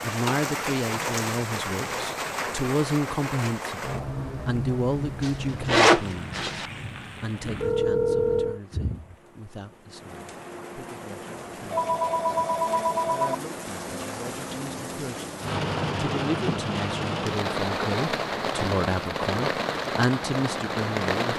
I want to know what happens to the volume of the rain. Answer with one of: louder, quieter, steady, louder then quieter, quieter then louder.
quieter then louder.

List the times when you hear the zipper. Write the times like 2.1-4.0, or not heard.
5.2-6.7.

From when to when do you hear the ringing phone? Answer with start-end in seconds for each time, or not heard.
7.4-8.6, 11.7-13.3.